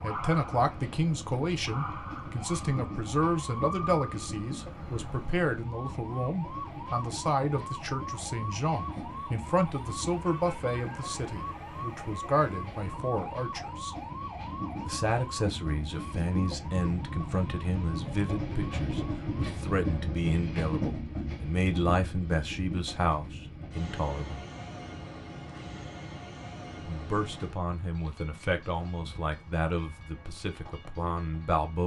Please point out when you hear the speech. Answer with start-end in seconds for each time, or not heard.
0.0-13.9, 14.8-24.4, 26.9-31.8.